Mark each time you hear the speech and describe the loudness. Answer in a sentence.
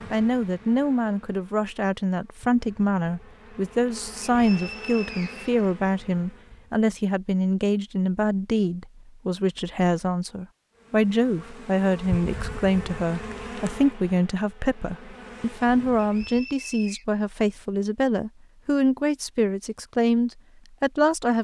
You can hear the speech from 0.1 to 21.3 s, at a steady volume.